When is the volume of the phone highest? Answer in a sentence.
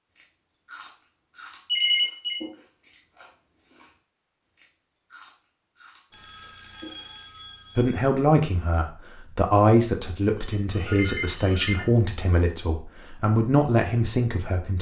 The volume of the phone peaks at 2 seconds.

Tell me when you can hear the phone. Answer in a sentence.
The phone can be heard from 1.6 to 2.4 s, from 6.1 to 8.0 s and from 10.3 to 11.8 s.